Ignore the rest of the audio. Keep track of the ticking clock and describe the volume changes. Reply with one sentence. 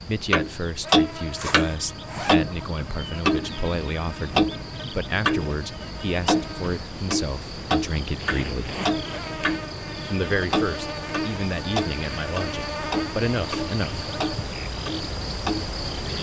The loudness of the ticking clock goes down.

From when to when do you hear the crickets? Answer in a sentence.
The crickets can be heard from 0.0 to 16.1 s.